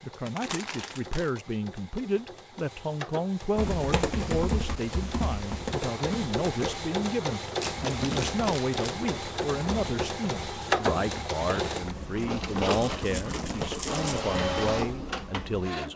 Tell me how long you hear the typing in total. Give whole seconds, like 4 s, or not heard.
11 s.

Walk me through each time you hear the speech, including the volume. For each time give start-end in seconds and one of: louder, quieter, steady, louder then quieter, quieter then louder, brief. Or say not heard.
0.0-15.9 steady.